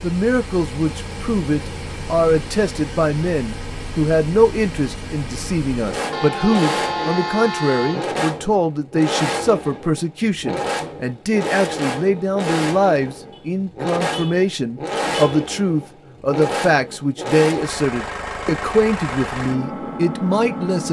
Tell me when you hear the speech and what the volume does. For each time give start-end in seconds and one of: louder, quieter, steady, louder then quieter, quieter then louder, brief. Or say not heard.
0.0-20.8 steady.